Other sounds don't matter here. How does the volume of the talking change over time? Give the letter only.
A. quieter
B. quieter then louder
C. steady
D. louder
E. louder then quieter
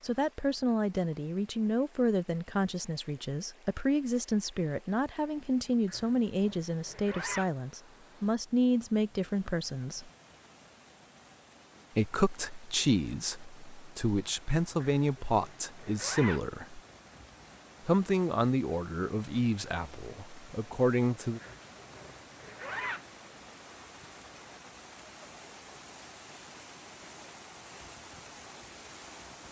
C.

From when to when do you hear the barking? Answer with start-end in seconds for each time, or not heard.
not heard.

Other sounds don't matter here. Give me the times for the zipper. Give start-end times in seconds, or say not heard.
5.8-7.5, 14.8-16.4, 21.4-23.0.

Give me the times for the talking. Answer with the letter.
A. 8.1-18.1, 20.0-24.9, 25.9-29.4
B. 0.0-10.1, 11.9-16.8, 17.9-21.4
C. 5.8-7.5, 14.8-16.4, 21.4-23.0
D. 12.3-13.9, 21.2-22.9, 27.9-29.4
B.